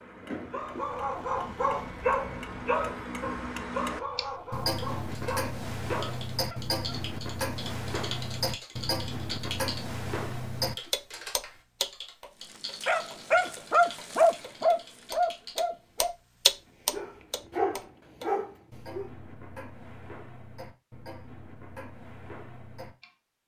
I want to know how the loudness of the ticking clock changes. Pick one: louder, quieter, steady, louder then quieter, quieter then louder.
louder then quieter.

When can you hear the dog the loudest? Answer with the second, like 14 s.
14 s.